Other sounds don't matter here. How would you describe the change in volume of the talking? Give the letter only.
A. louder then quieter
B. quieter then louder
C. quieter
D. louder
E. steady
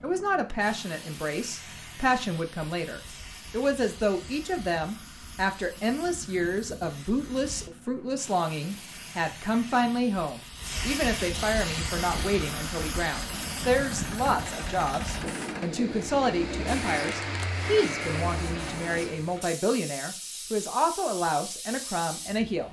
E.